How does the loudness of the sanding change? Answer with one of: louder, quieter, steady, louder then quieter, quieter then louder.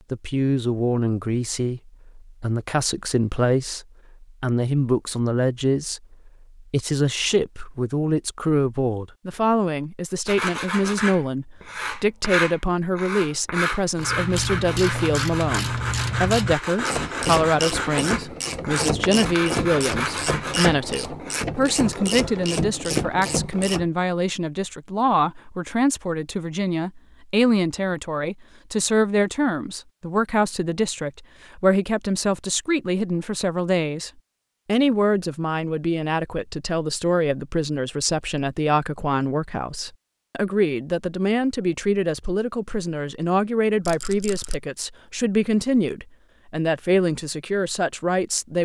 steady.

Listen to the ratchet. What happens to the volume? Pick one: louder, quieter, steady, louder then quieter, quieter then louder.
steady.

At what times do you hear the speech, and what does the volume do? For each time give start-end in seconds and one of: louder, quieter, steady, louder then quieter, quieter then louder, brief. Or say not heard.
0.1-48.5 steady.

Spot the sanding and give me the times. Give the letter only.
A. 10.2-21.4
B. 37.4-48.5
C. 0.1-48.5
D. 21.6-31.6
A.